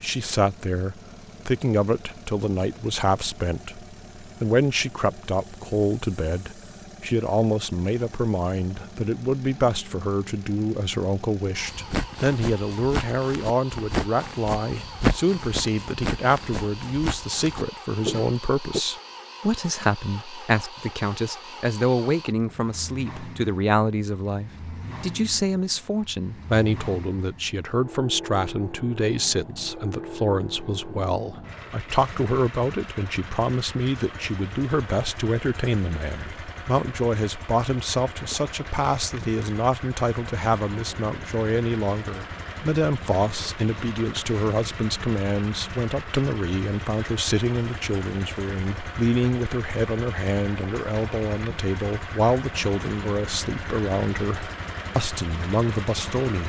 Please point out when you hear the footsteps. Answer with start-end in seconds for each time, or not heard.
11.6-18.8.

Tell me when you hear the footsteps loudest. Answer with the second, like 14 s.
15 s.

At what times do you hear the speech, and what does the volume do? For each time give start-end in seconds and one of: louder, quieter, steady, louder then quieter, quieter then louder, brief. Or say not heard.
0.0-56.4 steady.